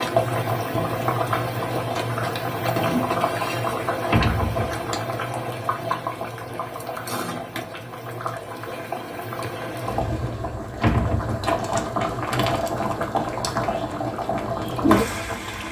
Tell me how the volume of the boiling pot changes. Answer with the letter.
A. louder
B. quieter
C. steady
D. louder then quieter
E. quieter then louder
E.